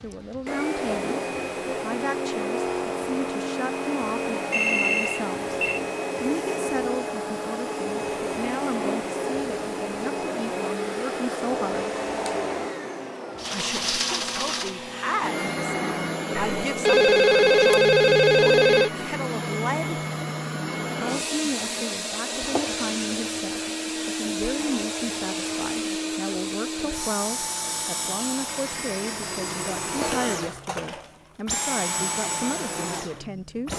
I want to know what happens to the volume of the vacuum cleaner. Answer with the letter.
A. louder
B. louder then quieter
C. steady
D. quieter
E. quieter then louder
C.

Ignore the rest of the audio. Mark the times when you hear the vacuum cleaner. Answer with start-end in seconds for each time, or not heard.
0.0-33.7.